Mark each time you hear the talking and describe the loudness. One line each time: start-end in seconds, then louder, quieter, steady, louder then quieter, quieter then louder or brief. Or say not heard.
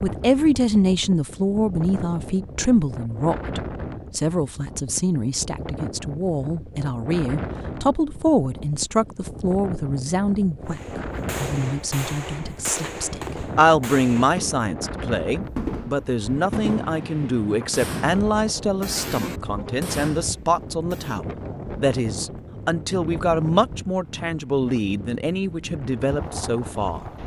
0.0-27.0 steady.